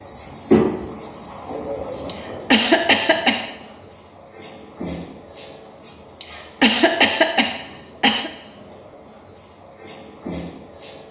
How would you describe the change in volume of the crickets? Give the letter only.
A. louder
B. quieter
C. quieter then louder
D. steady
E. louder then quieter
B.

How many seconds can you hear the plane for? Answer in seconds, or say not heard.
not heard.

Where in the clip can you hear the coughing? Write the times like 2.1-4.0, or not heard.
2.0-3.5, 6.2-8.3.